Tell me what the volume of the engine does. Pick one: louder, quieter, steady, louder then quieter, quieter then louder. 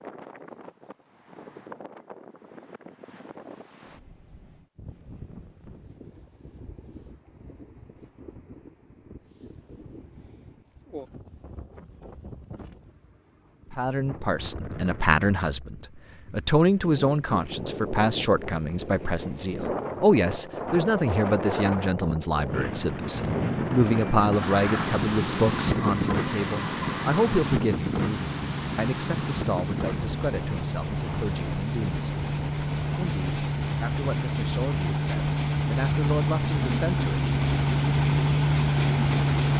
louder.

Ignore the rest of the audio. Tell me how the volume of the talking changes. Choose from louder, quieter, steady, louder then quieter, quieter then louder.
quieter.